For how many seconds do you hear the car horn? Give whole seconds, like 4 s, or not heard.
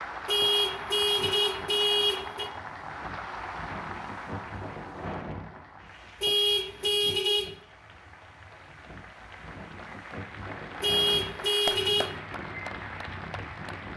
5 s.